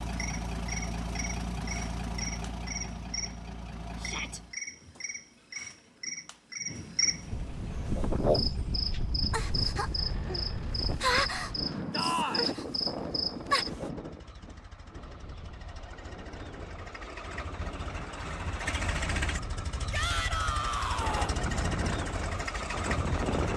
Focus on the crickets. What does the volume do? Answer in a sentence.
The volume of the crickets goes up.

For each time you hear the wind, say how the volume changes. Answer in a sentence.
You can hear the wind from 7.2 to 23.5 s, getting quieter then louder.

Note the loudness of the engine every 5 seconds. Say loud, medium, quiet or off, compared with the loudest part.
loud, quiet, quiet, loud, loud.